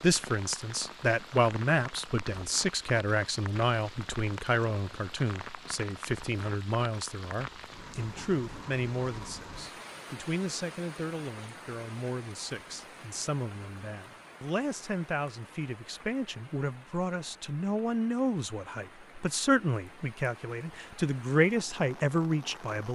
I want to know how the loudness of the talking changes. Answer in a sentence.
The volume of the talking goes down, then up.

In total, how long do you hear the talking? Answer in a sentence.
You can hear the talking for 23 seconds altogether.